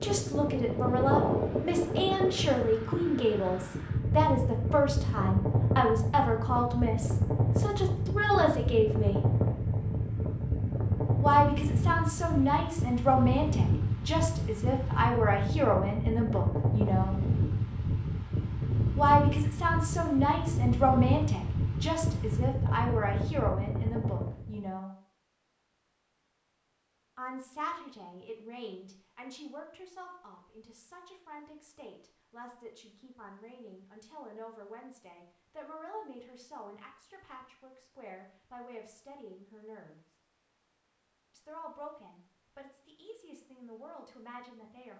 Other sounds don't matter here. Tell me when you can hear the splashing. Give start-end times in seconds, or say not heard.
not heard.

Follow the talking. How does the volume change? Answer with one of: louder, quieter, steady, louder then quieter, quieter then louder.
quieter.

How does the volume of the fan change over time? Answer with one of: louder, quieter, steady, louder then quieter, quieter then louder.
steady.